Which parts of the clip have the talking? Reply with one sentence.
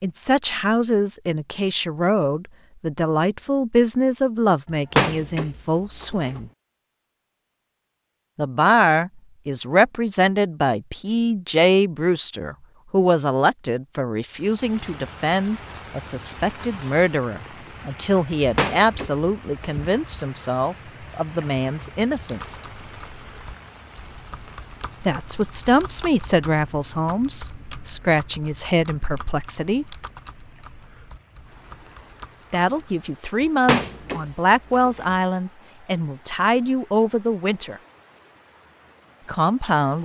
The talking can be heard from 0.0 to 6.5 s, from 8.3 to 22.6 s, from 25.0 to 29.9 s, from 32.5 to 37.8 s and from 39.2 to 40.0 s.